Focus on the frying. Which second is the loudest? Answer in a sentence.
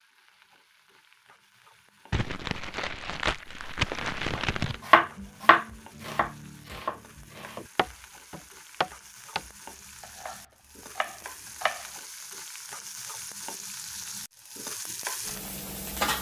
The volume of the frying peaks at 16 seconds.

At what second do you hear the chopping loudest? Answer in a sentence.
The loudest moment of the chopping is at 5 seconds.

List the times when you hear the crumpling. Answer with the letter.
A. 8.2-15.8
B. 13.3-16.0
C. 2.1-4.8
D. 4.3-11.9
C.